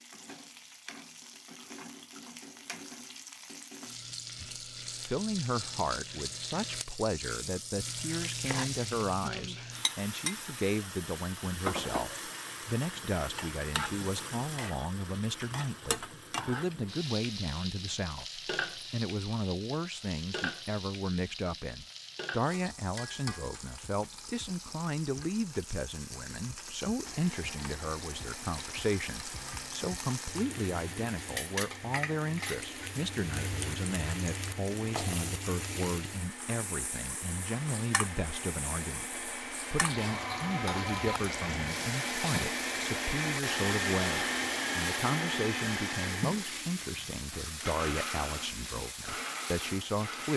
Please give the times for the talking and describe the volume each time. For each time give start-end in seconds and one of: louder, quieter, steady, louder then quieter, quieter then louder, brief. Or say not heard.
4.4-50.3 steady.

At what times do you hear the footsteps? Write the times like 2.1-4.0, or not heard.
not heard.